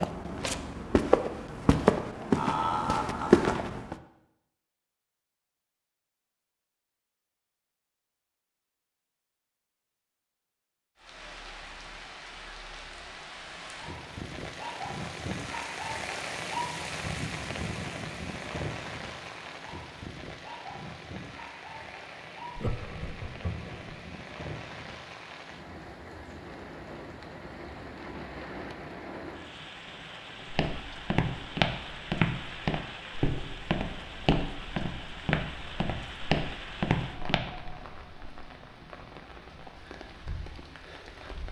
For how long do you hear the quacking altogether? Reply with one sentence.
You can't hear the quacking here.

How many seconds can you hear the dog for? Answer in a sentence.
The dog can't be heard in this clip.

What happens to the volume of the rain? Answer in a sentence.
The volume of the rain goes down.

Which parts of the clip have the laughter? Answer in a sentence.
You can hear the laughter from 2.3 to 3.5 s and from 22.6 to 23.9 s.